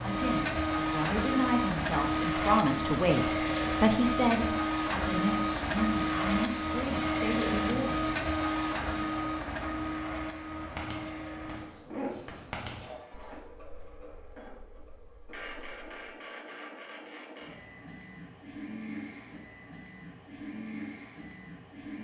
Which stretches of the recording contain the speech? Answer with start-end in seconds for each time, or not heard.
0.0-8.0.